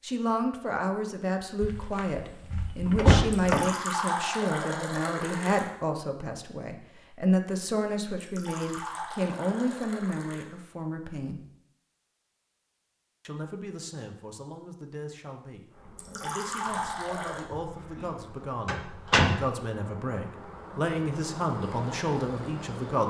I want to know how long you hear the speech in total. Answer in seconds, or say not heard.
21 s.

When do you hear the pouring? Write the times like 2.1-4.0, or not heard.
3.3-5.7, 8.2-10.4, 15.9-17.4.